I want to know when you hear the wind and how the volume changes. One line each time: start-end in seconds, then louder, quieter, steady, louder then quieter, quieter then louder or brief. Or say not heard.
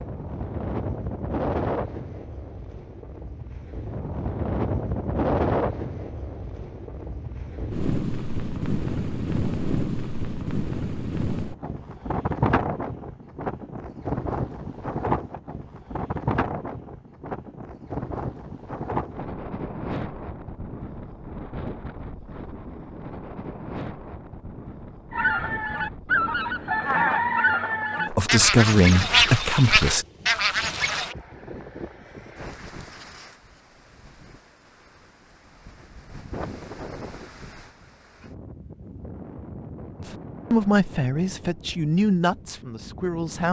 0.0-43.4 quieter.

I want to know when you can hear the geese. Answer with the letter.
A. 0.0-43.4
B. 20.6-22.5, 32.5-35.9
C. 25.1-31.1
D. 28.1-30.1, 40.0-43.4
C.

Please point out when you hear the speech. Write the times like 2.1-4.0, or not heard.
28.1-30.1, 40.0-43.4.